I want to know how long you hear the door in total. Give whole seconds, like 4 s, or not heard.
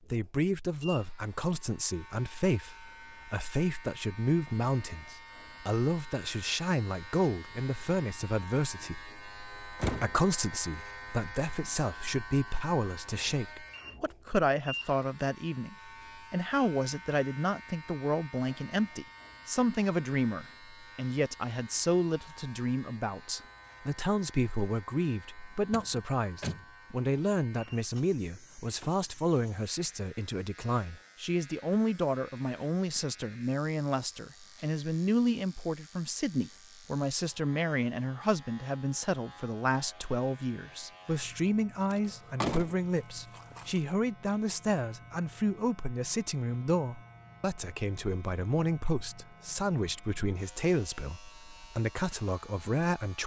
3 s.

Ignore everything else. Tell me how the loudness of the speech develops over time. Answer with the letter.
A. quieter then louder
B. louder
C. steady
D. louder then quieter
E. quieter
C.